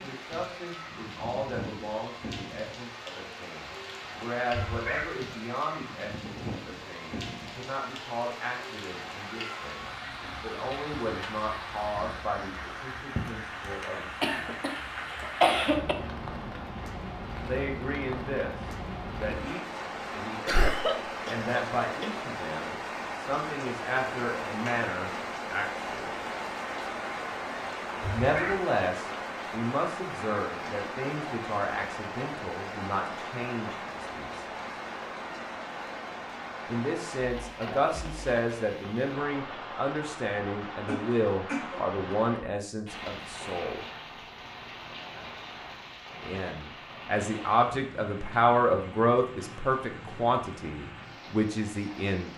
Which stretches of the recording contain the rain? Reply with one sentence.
The rain can be heard from 0.0 to 52.3 s.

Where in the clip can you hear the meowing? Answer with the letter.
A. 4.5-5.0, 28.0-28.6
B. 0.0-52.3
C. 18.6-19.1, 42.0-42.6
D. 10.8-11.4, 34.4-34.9
A.